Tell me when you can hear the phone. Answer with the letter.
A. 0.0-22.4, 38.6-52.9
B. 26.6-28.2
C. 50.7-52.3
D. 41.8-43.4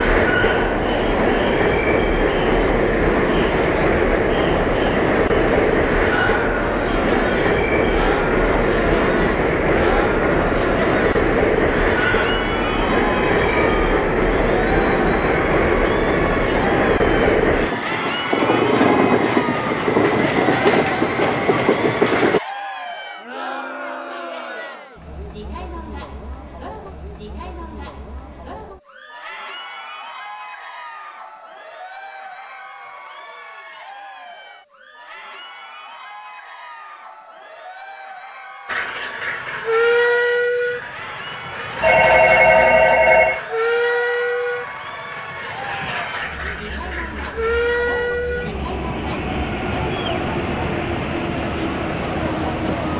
D.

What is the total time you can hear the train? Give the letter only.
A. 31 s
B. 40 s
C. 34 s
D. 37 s
D.